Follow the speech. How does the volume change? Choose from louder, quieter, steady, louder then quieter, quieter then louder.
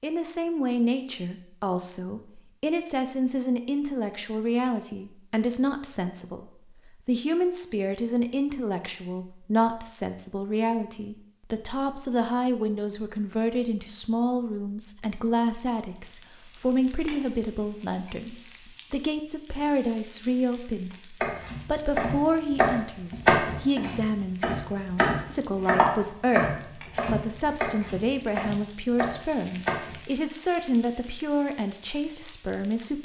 steady.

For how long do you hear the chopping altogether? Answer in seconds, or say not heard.
9 s.